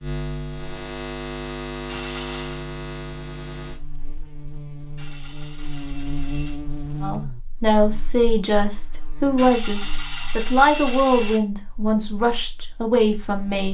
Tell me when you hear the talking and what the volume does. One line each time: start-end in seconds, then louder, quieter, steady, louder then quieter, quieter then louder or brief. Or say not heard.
7.0-13.6 steady.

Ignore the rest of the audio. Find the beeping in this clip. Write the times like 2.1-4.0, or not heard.
1.9-2.6, 5.0-6.6, 9.3-11.4.